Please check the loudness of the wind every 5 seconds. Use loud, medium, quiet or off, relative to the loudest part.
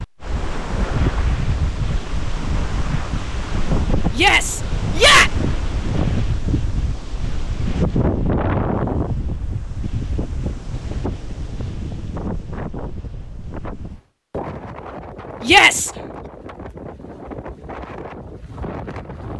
loud, loud, medium, medium.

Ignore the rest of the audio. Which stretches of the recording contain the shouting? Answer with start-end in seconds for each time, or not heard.
4.1-5.3, 15.4-15.9.